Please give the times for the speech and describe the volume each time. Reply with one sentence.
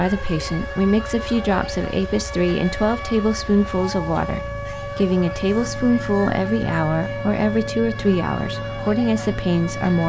The speech can be heard from 0.0 to 10.0 s, at a steady volume.